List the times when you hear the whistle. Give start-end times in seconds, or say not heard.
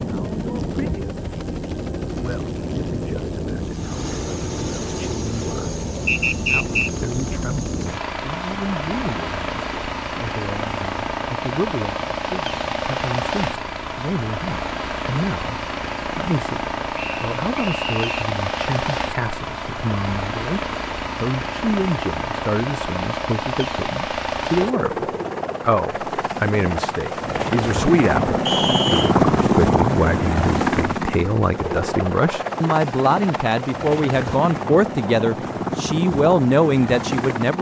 6.0-6.9, 16.9-18.2, 28.4-29.1.